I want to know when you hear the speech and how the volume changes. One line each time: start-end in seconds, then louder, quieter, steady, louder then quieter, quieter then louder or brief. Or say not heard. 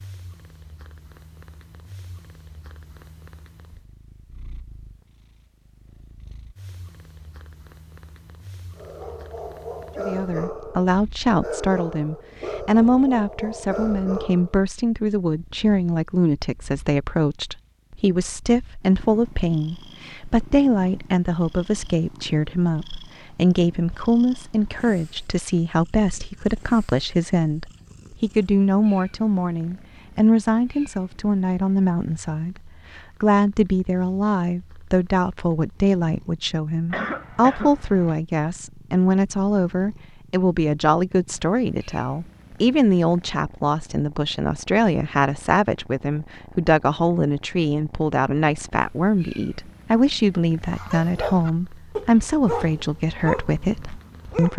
9.9-54.5 steady.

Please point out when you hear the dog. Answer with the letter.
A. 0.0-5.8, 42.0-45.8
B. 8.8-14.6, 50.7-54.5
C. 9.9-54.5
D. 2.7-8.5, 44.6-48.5
B.